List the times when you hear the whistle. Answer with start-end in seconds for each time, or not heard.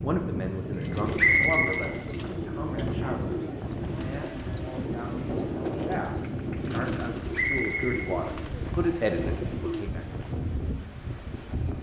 1.1-1.8, 7.3-8.1.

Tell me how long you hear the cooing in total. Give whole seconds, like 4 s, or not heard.
9 s.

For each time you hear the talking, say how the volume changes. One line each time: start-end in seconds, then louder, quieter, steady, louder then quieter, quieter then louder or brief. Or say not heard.
0.0-10.0 quieter then louder.